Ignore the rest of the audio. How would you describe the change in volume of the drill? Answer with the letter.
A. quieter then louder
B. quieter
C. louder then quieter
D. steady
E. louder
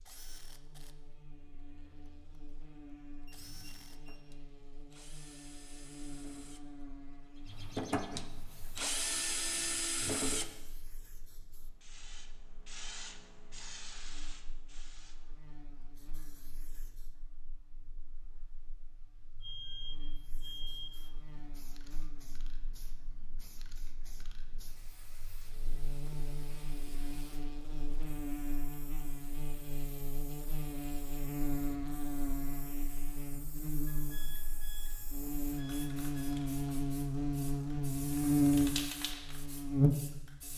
E.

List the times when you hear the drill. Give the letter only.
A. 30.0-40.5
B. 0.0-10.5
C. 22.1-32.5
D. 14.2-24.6
B.